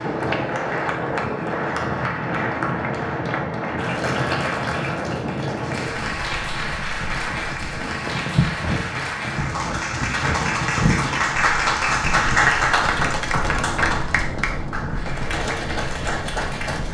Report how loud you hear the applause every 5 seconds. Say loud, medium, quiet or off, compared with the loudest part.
medium, medium, loud, medium.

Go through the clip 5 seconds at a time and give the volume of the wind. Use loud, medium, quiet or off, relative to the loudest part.
loud, loud, loud, medium.